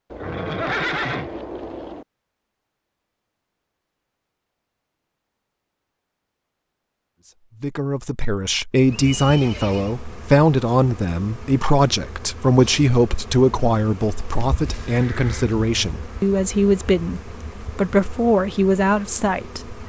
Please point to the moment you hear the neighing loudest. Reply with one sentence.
The loudest moment of the neighing is at 1 second.